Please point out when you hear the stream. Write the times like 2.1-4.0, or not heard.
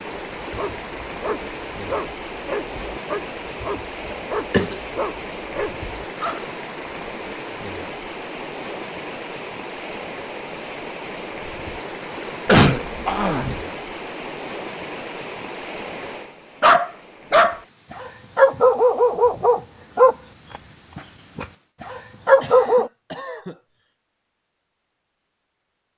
0.0-21.8.